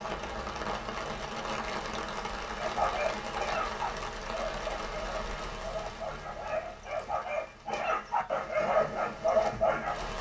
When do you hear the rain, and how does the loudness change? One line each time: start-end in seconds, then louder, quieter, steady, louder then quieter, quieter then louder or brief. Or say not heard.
0.0-10.1 quieter.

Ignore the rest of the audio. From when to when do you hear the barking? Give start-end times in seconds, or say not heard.
2.5-10.1.